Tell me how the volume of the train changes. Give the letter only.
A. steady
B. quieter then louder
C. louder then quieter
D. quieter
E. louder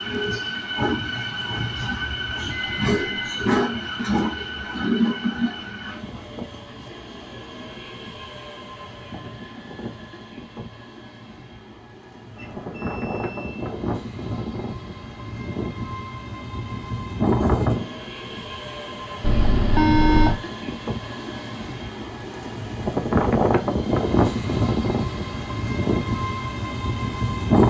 B.